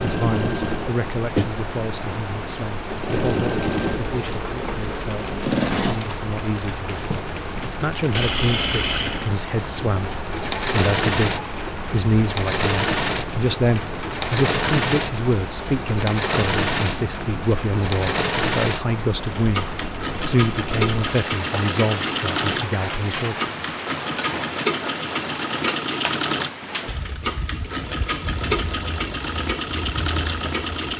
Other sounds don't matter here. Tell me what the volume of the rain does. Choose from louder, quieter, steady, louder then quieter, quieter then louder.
steady.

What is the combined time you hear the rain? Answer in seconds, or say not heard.
31 s.